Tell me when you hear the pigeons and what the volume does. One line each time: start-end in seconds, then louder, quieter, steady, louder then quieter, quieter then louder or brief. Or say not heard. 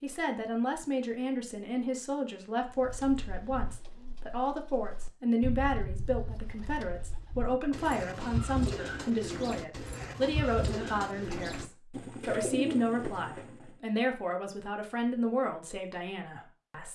2.6-13.7 louder.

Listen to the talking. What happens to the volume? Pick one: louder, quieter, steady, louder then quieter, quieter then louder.
steady.